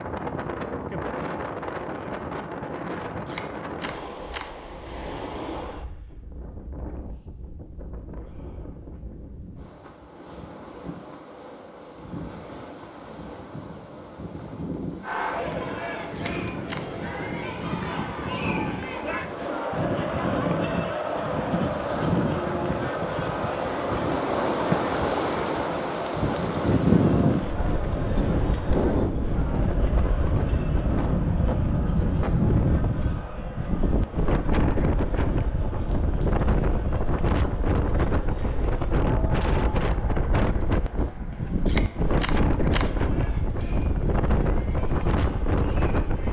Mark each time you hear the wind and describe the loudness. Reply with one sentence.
You can hear the wind from 0.0 to 46.2 s, getting louder.